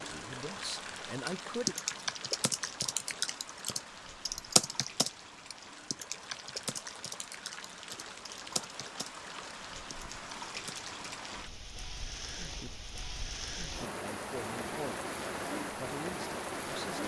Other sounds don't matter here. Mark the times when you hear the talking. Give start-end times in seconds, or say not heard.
0.0-1.8, 14.0-17.0.